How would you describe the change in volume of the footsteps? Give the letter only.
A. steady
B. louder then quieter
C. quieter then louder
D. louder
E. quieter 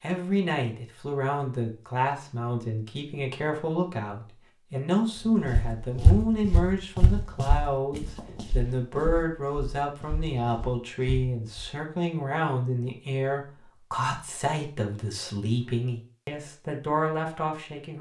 E.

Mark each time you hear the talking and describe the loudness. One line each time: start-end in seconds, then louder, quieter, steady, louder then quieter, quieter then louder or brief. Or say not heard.
0.0-17.9 steady.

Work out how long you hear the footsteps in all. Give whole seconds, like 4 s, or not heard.
6 s.